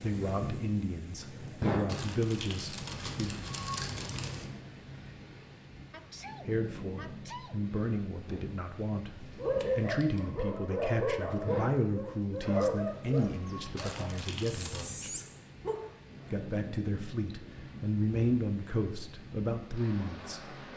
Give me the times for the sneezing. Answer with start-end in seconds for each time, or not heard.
5.9-7.6.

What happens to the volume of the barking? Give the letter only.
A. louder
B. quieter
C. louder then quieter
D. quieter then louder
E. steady
B.